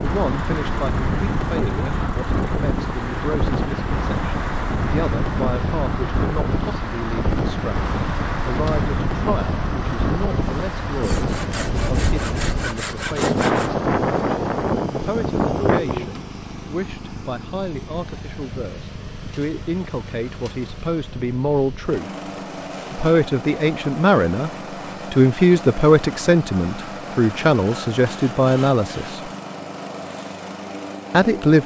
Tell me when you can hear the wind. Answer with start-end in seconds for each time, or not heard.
0.0-16.1.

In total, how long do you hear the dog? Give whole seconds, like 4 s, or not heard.
not heard.